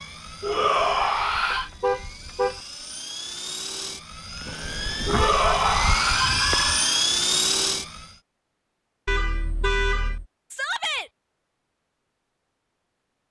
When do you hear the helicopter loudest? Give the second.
7 s.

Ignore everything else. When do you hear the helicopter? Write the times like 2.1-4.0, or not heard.
0.0-8.2.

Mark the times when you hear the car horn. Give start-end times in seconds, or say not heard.
1.5-2.6, 5.0-6.8, 9.1-10.2.